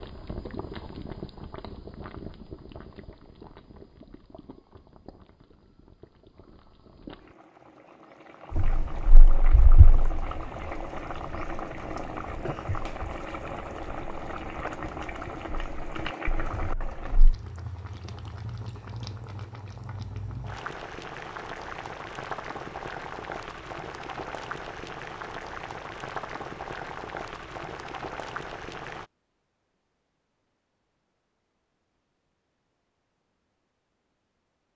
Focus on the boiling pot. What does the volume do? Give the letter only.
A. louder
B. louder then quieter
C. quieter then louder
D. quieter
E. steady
A.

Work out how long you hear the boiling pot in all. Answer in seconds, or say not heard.
29 s.